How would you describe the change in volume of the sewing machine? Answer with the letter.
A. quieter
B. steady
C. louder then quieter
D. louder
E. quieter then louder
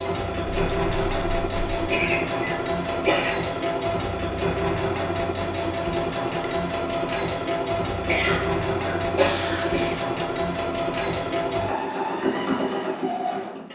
B.